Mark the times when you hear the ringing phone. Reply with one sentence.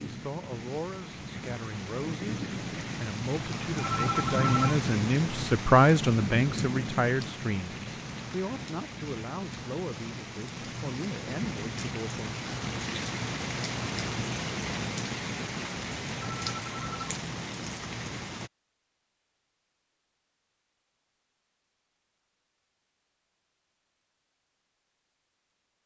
The ringing phone can be heard from 3.8 to 4.8 s and from 16.2 to 17.1 s.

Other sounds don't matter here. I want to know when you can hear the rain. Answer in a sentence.
You can hear the rain from 0.0 to 18.5 s.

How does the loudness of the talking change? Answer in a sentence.
The volume of the talking goes up, then down.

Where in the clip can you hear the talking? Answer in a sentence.
You can hear the talking from 0.1 to 12.4 s.